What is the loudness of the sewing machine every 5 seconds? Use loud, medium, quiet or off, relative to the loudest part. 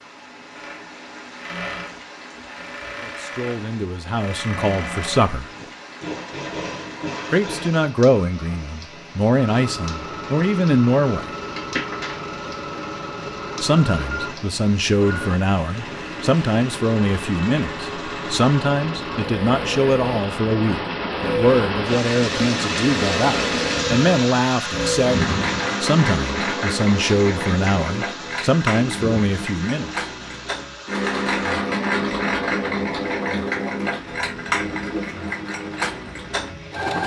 medium, medium, medium, medium, loud, loud, loud, loud.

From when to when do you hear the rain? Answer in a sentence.
The rain can be heard from 0.0 to 36.9 s.